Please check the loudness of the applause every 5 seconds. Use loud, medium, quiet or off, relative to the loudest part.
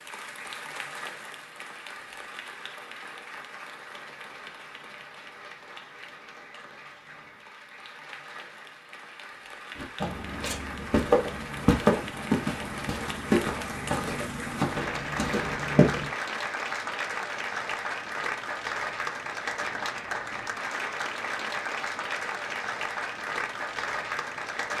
medium, quiet, medium, loud, loud.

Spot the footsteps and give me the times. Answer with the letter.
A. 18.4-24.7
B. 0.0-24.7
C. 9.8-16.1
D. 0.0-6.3
C.